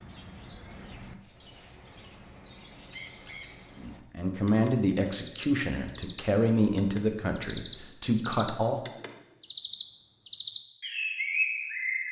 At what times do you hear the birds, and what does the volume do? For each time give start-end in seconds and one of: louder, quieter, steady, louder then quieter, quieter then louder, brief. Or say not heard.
0.0-12.0 louder.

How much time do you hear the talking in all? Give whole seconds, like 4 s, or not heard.
5 s.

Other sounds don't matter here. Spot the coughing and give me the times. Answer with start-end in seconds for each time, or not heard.
not heard.